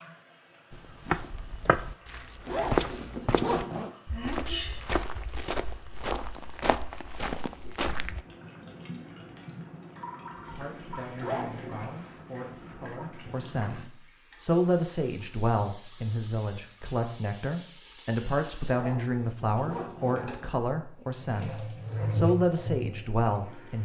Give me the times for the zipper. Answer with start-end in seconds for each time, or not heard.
2.5-3.9, 11.2-11.8, 18.7-20.3.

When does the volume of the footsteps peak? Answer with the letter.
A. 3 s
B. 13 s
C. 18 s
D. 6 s
A.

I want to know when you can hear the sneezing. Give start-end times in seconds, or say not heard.
4.1-4.8.